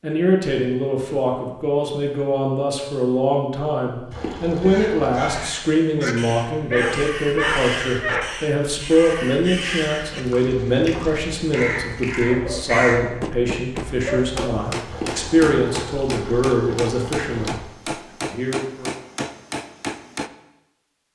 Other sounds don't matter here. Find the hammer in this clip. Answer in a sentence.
The hammer can be heard from 13.1 to 20.3 s.